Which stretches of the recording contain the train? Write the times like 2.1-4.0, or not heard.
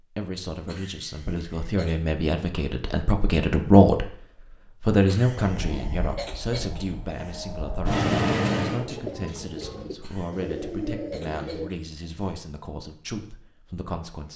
5.3-8.8.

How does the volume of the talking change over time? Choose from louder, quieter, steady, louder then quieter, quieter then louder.
louder then quieter.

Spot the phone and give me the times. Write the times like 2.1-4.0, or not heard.
not heard.